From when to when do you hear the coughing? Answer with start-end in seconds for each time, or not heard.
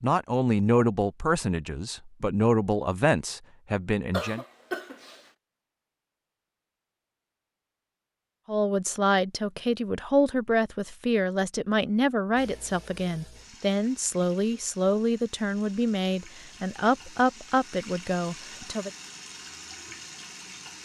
4.1-5.2.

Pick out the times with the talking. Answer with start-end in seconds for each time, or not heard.
0.0-4.5, 8.4-18.9.